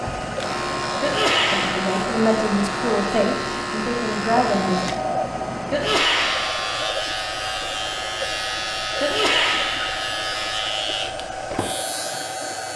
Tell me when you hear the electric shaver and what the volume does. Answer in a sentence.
The electric shaver can be heard from 0.0 to 12.7 s, at a steady volume.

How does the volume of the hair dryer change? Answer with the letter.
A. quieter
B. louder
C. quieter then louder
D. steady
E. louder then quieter
D.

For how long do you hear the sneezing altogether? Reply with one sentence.
The sneezing can be heard for 3 seconds in total.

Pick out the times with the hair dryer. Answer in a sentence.
The hair dryer can be heard from 0.0 to 12.7 s.